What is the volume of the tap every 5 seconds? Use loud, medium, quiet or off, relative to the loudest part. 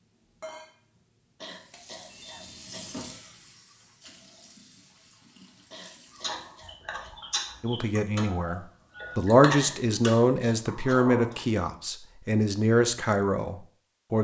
loud, medium, off.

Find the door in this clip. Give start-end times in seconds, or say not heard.
2.0-3.1.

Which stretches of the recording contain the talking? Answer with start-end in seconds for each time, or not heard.
7.6-14.1.